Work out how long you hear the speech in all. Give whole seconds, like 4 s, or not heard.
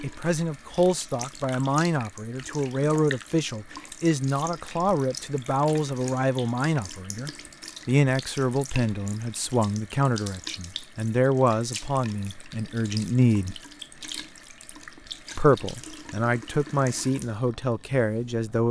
17 s.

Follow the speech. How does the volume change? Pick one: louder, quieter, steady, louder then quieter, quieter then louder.
steady.